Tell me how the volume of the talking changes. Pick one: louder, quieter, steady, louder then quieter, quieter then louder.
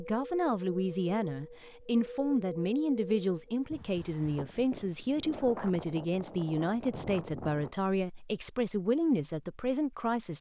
steady.